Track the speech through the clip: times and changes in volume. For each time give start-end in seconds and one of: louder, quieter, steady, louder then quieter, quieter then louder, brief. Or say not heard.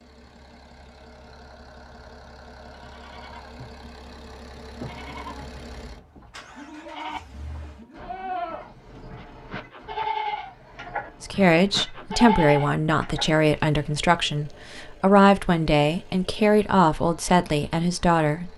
11.2-18.5 steady.